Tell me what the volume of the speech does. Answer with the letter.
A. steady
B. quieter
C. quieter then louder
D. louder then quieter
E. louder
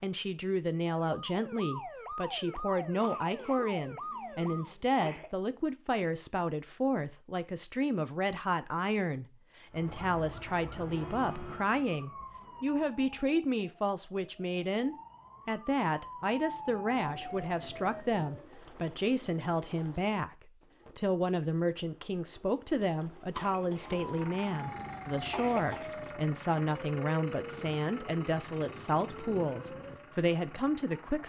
A.